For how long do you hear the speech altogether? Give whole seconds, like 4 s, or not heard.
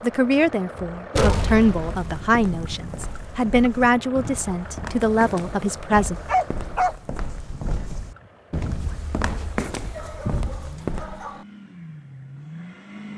6 s.